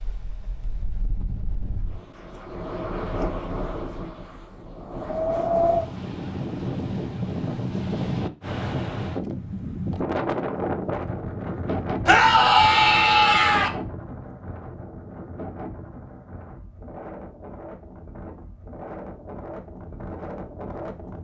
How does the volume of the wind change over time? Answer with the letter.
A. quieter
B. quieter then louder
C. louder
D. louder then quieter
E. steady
D.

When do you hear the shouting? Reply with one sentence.
You can hear the shouting from 12.1 to 13.7 s.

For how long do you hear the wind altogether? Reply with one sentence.
The wind can be heard for 21 seconds in total.